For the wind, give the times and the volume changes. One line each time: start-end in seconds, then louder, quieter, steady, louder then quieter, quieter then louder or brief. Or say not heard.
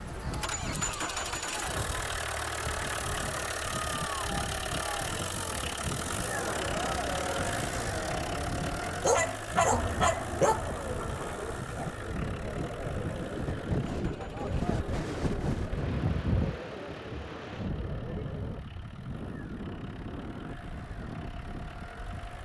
0.0-22.4 louder then quieter.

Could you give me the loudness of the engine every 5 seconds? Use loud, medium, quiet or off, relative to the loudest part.
loud, loud, medium, quiet, quiet.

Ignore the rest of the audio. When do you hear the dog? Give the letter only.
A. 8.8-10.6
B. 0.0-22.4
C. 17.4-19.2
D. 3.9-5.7
A.